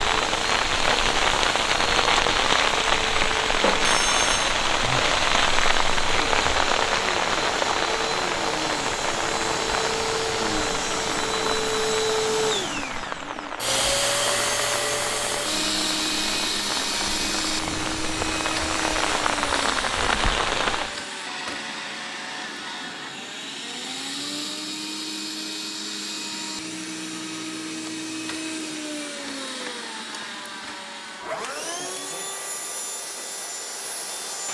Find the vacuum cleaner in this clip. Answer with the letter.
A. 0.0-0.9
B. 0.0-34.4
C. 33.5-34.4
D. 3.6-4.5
B.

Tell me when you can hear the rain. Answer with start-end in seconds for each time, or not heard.
0.0-20.9.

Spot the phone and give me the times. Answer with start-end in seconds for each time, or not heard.
3.6-4.5.